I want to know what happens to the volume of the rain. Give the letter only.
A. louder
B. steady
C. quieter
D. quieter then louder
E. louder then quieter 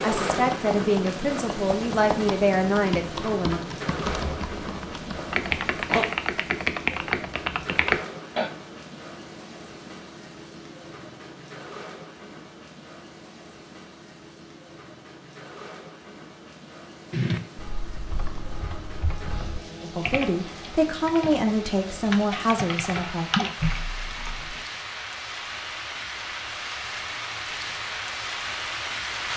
D.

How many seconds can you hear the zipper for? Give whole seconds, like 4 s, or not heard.
2 s.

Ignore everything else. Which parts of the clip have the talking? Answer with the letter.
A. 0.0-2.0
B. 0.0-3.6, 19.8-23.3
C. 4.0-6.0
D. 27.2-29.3
B.